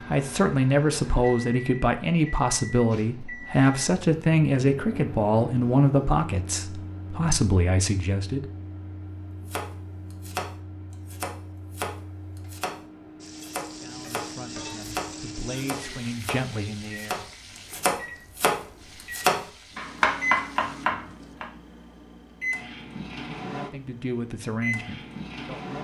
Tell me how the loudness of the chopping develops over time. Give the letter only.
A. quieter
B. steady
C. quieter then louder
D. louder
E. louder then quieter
D.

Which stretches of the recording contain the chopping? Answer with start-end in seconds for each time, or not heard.
9.4-12.8, 13.4-21.4.